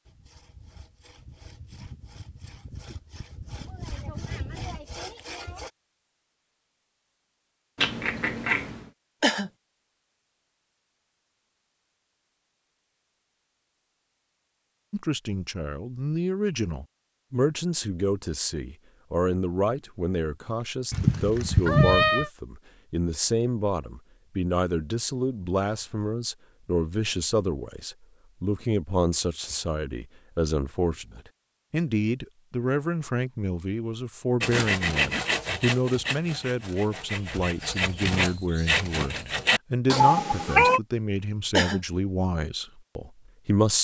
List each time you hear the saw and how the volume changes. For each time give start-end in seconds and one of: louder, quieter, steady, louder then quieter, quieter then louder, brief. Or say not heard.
0.1-5.7 louder
34.4-40.0 quieter then louder.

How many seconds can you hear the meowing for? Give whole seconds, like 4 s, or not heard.
3 s.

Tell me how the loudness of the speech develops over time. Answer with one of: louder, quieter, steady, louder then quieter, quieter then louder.
steady.